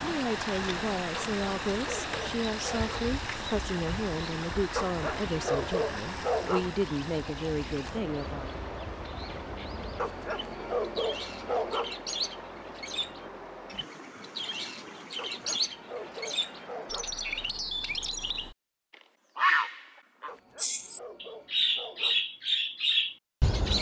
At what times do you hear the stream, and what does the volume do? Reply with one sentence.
The stream can be heard from 0.0 to 18.6 s, getting quieter.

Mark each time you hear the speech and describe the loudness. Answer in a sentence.
You can hear the speech from 0.0 to 8.6 s, at a steady volume.